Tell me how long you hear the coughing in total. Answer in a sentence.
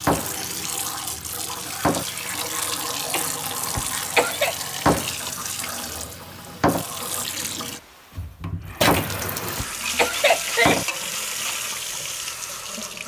You can hear the coughing for 3 seconds altogether.